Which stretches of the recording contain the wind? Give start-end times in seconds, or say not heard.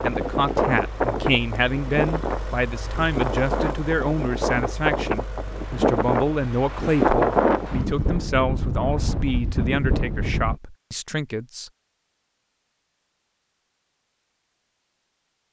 0.0-10.6.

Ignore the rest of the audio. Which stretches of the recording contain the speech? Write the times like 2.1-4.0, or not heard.
0.0-11.7.